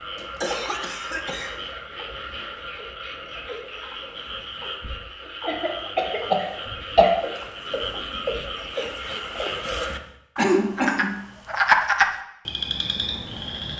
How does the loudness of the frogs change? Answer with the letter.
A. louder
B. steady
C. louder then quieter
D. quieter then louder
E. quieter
A.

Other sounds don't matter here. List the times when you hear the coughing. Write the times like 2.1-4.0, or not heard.
0.1-1.6, 5.5-7.1, 9.9-11.2.